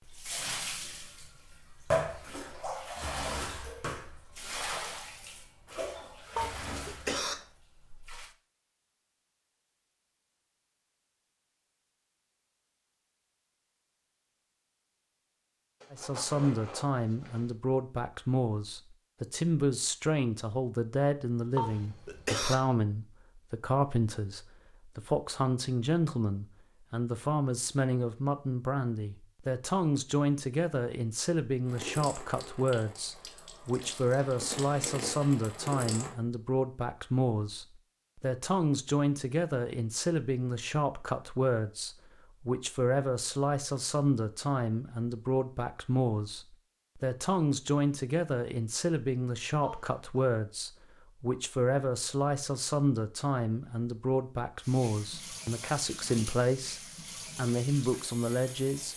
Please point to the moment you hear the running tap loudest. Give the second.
2 s.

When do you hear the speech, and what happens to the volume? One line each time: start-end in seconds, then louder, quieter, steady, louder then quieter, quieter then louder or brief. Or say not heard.
15.9-58.9 steady.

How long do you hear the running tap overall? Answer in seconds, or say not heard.
17 s.